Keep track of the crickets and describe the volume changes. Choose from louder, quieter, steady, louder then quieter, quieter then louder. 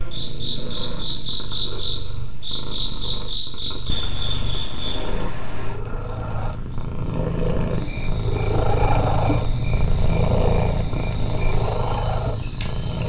quieter.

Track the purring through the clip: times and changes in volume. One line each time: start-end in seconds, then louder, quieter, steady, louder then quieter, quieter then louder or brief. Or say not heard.
0.0-13.0 louder.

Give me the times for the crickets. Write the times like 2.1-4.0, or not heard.
0.0-13.0.